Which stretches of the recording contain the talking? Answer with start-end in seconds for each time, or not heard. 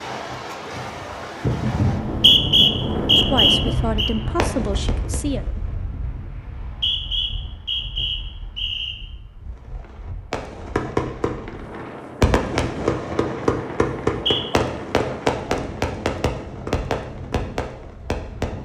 3.1-5.5.